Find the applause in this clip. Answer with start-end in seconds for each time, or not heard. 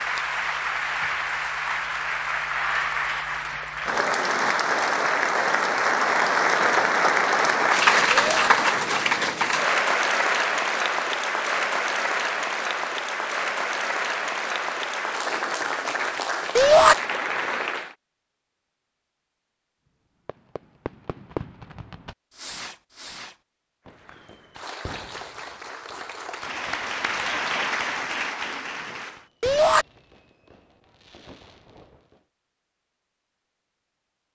0.0-17.9, 23.9-29.3.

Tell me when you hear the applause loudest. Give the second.
8 s.